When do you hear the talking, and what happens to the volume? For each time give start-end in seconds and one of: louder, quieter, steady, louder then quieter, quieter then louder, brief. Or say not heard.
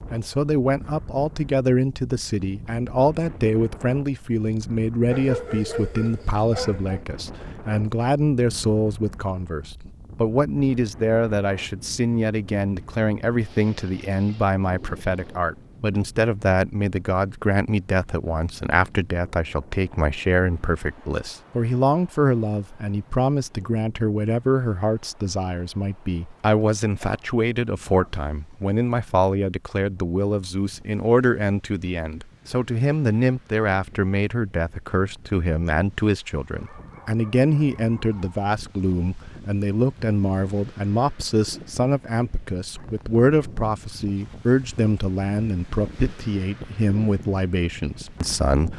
0.1-48.7 steady.